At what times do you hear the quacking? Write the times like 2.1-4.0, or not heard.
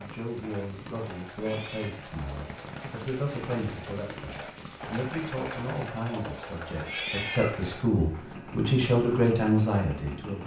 not heard.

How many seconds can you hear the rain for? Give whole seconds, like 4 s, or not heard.
6 s.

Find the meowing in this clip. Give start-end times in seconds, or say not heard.
1.4-2.0, 6.8-7.7.